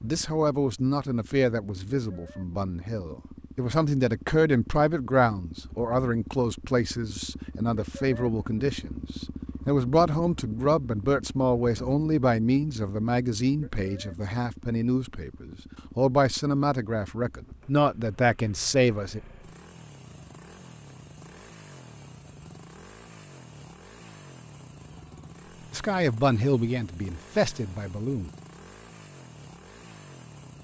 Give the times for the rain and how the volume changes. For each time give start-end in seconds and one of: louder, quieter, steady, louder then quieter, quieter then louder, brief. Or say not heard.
not heard.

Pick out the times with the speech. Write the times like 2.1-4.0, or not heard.
0.0-19.2, 25.7-28.3.